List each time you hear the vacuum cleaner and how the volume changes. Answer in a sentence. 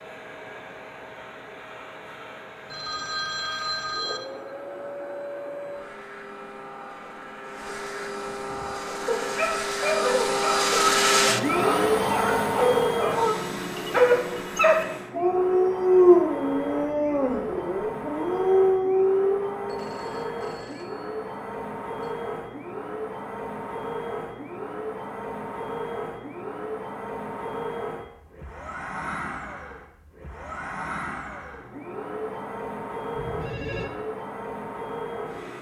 The vacuum cleaner can be heard from 0.0 to 35.5 s, getting louder then quieter.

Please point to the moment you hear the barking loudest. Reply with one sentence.
The loudest moment of the barking is at 16 seconds.